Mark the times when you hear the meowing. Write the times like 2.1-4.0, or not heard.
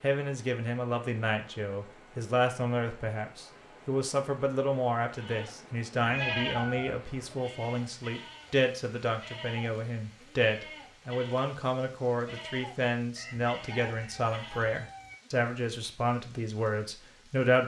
6.0-7.3.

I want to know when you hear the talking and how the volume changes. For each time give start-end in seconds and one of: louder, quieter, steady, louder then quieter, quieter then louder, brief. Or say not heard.
0.0-17.6 steady.